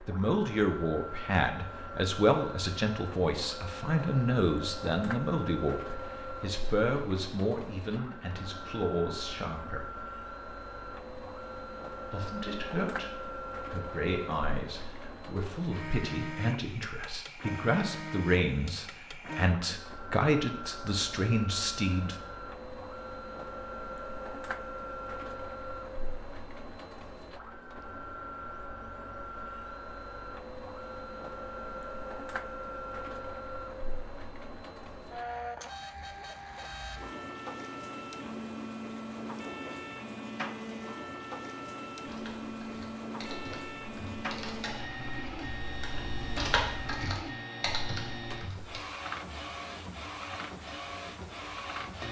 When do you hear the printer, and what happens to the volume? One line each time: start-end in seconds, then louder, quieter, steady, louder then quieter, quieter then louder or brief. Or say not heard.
0.0-52.0 steady.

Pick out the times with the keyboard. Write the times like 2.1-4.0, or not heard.
42.0-48.8.